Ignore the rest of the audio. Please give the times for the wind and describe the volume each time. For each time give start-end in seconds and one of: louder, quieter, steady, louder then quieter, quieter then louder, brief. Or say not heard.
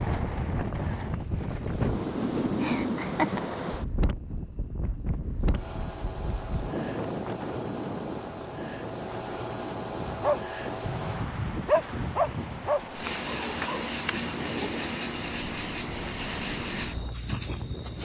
0.0-18.0 quieter.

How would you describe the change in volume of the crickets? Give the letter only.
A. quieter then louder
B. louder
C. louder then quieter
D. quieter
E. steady
B.